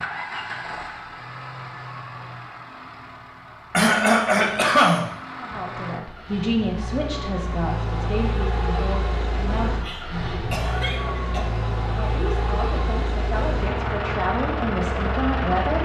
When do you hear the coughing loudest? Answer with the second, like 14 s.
5 s.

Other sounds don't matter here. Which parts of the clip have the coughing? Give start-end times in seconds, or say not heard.
3.7-5.6, 9.7-11.4.